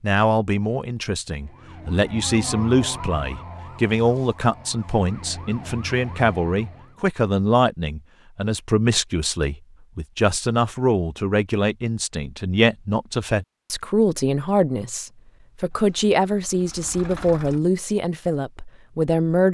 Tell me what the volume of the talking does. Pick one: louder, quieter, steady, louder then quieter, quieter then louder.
steady.